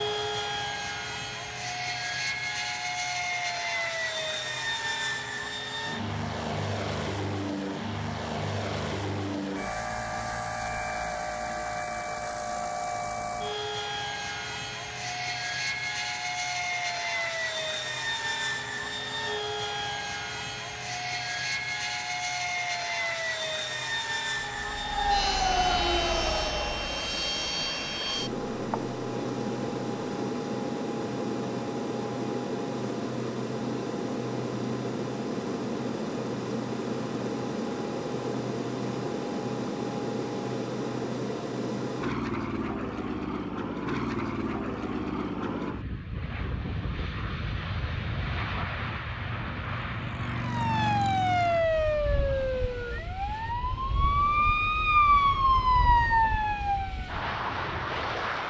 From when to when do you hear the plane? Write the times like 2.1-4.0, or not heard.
0.0-58.4.